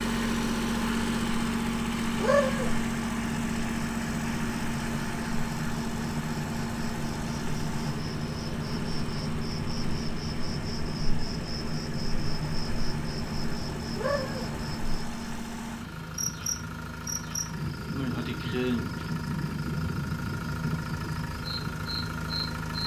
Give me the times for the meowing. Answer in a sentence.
You can hear the meowing from 2.2 to 2.9 s and from 13.9 to 14.5 s.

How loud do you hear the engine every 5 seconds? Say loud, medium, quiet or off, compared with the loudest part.
loud, medium, medium, medium, medium.